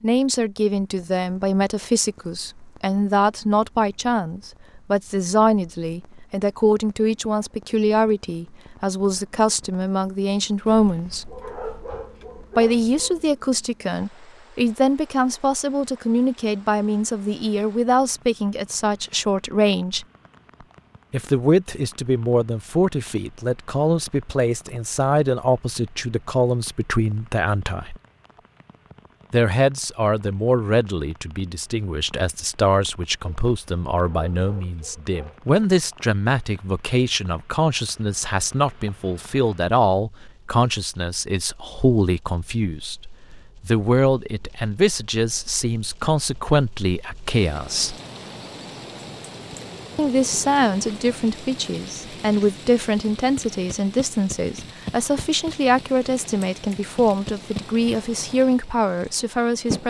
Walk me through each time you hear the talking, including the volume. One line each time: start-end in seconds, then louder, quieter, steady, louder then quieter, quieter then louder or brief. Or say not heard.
0.0-11.3 steady
12.6-20.1 steady
21.1-27.9 steady
29.3-48.0 steady
50.0-59.8 steady.